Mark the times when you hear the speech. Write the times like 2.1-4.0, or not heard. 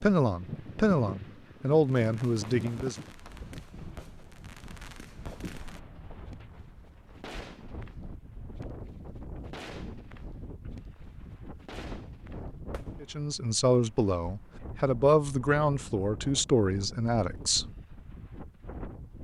0.0-3.0, 13.0-17.7.